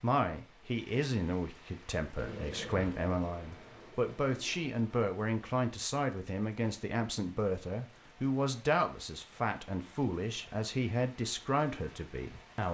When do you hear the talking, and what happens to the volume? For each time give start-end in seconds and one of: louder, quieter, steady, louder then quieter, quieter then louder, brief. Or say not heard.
0.0-12.7 steady.